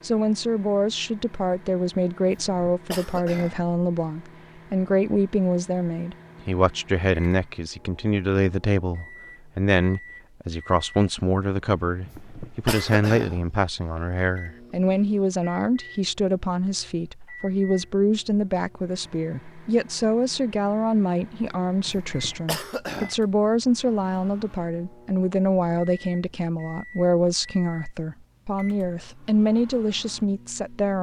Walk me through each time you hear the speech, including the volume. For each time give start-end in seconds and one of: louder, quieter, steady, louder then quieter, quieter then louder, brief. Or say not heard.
0.0-30.9 steady.